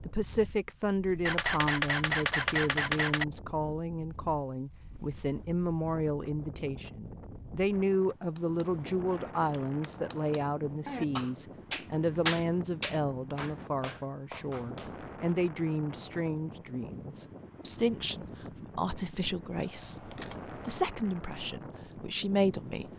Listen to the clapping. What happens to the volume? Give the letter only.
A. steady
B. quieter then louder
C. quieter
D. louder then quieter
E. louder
D.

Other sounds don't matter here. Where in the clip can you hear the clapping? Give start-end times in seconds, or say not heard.
8.3-15.3.